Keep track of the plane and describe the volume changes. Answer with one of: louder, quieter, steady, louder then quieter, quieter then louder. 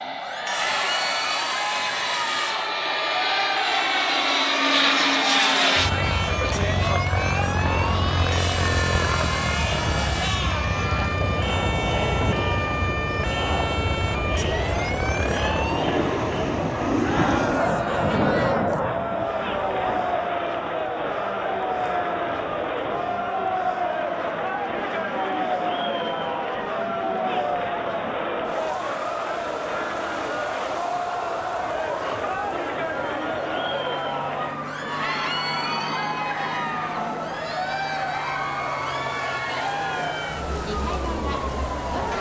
quieter.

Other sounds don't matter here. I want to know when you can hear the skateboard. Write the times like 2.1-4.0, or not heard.
not heard.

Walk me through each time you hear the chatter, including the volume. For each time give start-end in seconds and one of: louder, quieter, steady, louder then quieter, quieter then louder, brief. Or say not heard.
0.1-42.1 steady.